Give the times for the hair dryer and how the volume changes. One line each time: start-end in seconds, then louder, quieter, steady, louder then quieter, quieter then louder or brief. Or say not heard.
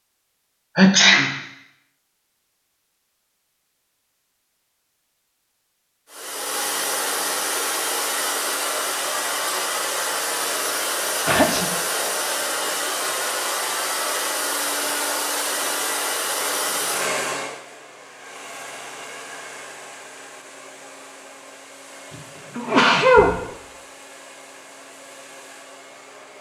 6.1-26.3 quieter.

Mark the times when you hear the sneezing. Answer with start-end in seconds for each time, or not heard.
0.8-1.4, 11.2-11.7, 22.6-23.4.